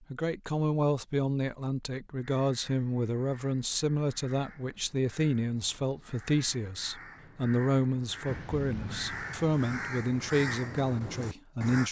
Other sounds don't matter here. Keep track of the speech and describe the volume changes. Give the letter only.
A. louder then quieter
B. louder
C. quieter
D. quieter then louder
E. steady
E.